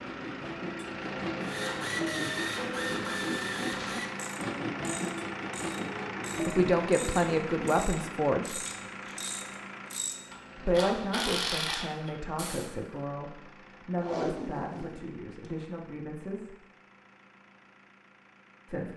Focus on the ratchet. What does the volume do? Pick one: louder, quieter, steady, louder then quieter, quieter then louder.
quieter then louder.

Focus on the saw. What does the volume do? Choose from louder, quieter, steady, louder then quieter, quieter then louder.
steady.